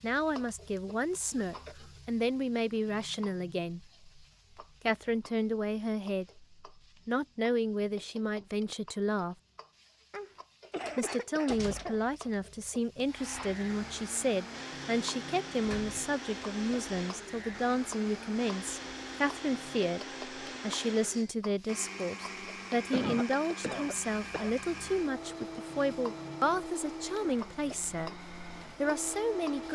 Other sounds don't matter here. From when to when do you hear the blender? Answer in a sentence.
You can hear the blender from 13.1 to 29.7 s.